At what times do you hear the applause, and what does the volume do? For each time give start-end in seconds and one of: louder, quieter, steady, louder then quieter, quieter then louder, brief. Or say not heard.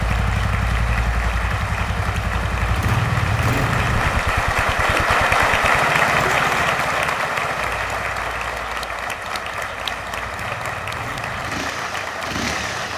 0.0-12.9 louder then quieter.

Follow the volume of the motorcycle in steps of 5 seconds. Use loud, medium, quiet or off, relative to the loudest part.
loud, medium, medium.